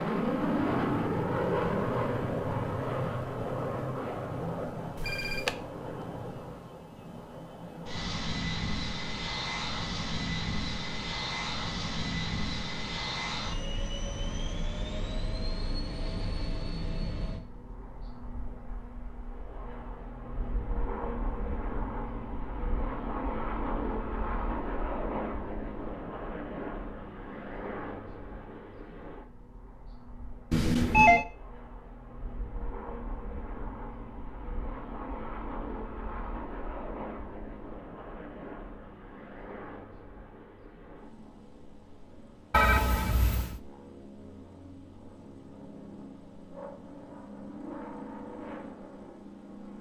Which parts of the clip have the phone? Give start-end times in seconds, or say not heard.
5.0-5.5, 30.5-31.2, 42.5-43.6.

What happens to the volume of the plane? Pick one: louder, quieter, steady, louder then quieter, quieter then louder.
quieter.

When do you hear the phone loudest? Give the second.
31 s.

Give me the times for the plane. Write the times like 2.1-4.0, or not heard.
0.0-49.7.